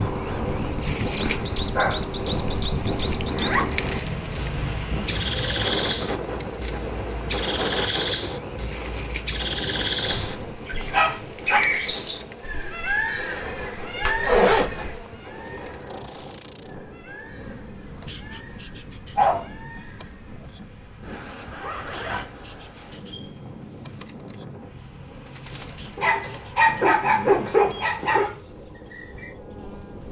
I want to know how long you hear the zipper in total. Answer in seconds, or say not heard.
3 s.